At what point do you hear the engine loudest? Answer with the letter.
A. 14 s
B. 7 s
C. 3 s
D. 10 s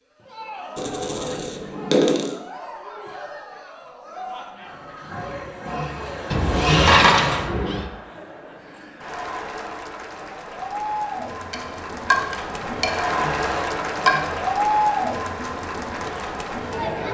B.